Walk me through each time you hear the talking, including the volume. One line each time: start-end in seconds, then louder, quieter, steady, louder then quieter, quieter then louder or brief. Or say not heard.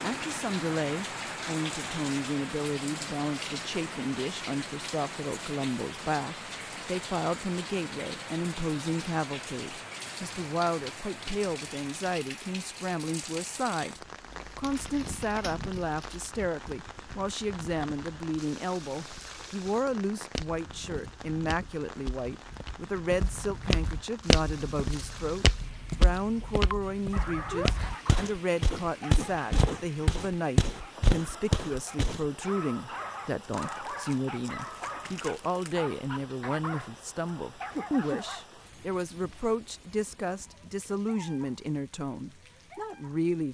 0.0-43.4 steady.